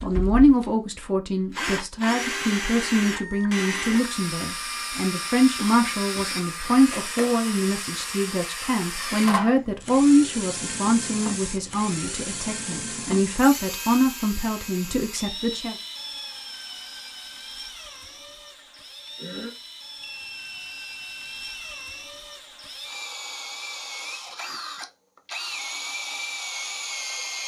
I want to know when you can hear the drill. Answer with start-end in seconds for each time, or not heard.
0.0-27.4.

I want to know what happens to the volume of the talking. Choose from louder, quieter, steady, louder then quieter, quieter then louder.
steady.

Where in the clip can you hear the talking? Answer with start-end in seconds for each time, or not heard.
0.0-15.8.